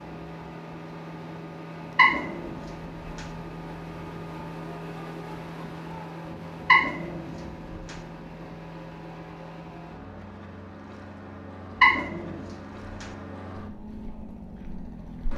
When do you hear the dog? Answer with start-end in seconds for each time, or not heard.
1.9-3.2, 6.7-8.0, 11.8-13.1.